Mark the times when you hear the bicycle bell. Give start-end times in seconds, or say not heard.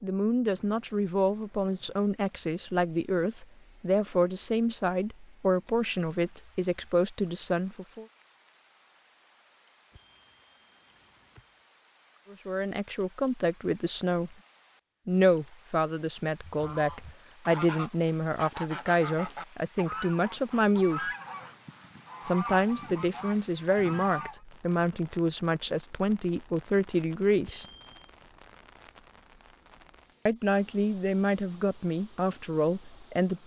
9.9-11.6, 27.4-28.1.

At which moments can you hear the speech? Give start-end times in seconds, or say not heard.
0.0-8.1, 12.3-14.3, 15.1-21.1, 22.2-27.6, 30.2-33.4.